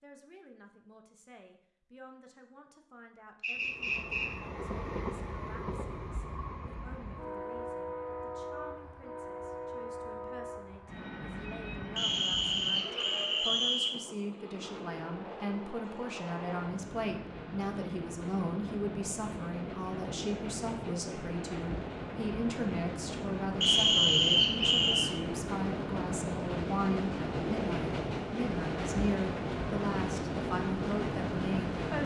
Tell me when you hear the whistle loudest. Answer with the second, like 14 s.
24 s.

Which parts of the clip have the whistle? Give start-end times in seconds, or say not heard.
3.4-4.3, 11.9-13.9, 23.6-25.1.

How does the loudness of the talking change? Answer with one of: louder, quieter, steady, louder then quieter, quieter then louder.
louder.